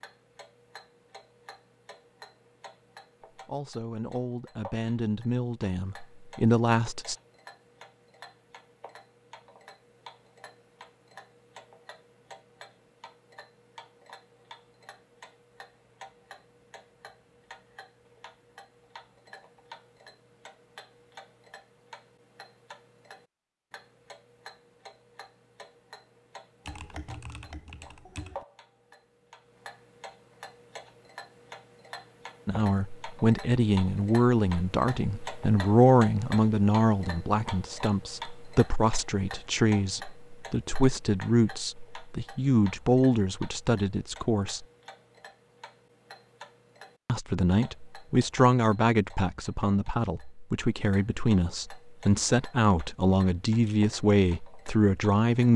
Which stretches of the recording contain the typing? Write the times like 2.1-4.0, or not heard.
26.6-28.4.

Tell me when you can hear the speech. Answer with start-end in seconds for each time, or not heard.
3.4-7.2, 32.5-44.6, 47.0-55.5.